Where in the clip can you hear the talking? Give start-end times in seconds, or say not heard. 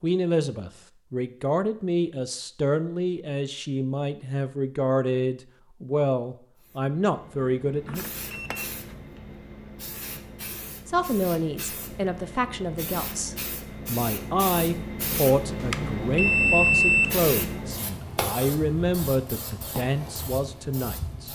0.0-8.1, 10.8-21.3.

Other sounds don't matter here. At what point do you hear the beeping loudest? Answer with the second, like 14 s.
17 s.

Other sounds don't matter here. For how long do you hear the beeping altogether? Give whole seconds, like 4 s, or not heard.
3 s.